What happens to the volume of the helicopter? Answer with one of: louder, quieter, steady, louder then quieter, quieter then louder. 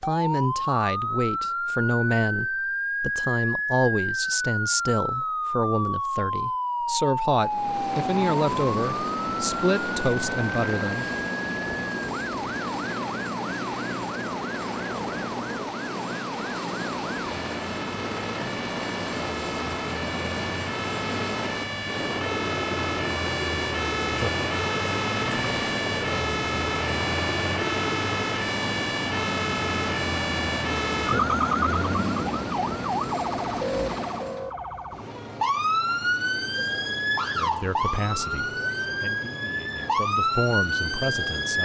steady.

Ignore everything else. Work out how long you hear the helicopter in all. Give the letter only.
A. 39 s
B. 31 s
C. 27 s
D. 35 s
C.